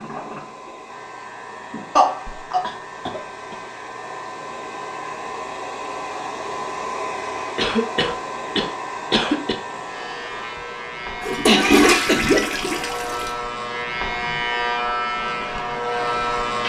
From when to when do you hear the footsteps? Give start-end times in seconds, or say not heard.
not heard.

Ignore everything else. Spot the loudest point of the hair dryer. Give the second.
7 s.